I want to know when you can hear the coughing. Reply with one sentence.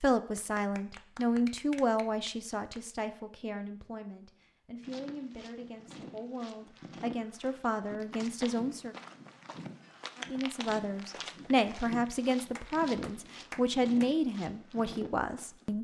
You can't hear the coughing here.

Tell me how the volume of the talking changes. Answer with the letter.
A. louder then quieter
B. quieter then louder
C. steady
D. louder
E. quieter
B.